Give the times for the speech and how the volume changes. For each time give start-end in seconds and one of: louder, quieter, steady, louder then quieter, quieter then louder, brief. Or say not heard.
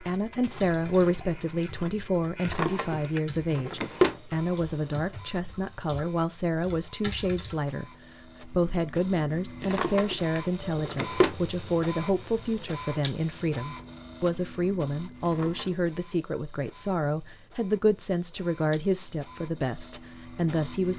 0.0-20.9 steady.